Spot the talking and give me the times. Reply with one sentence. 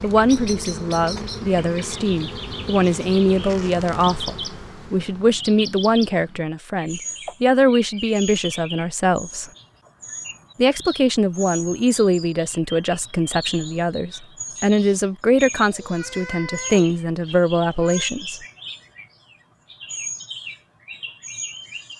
You can hear the talking from 0.0 to 9.4 s and from 10.6 to 18.4 s.